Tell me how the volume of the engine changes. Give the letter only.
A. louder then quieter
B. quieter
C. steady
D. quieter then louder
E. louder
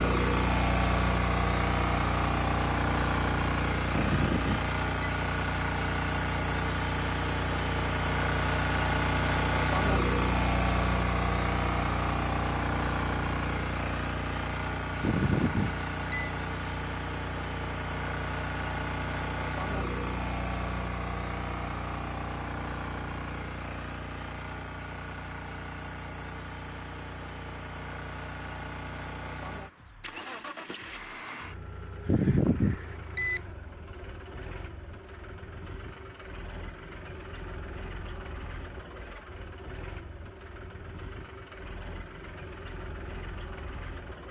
B.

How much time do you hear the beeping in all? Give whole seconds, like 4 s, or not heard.
4 s.